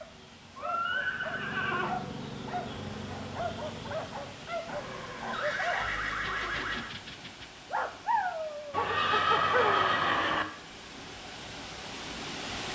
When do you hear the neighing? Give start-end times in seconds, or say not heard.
0.6-1.9, 4.7-6.9, 8.7-10.4.